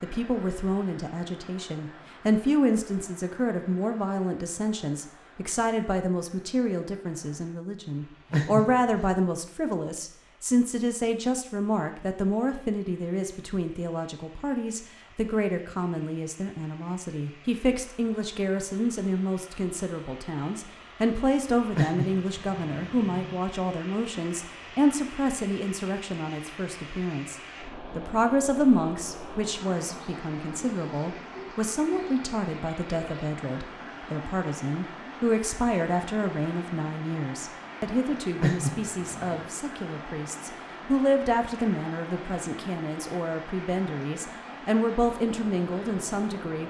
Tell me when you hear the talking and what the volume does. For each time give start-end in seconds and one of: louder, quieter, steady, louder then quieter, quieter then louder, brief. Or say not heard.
0.0-46.6 steady.